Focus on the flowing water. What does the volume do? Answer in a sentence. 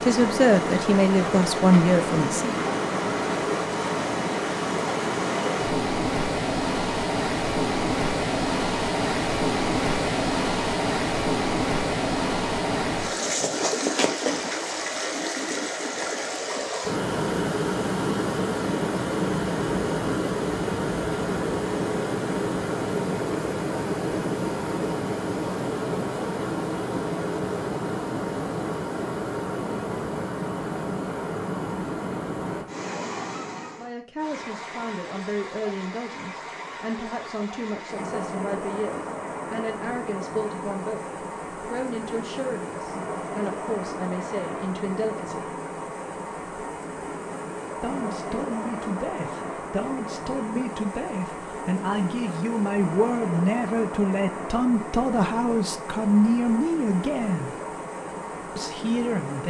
The loudness of the flowing water goes down.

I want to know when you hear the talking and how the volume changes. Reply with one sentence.
The talking can be heard briefly from 0.0 to 2.6 s; from 33.8 to 45.5 s, at a steady volume; from 47.8 to 57.6 s, getting louder; and briefly from 58.5 to 59.4 s.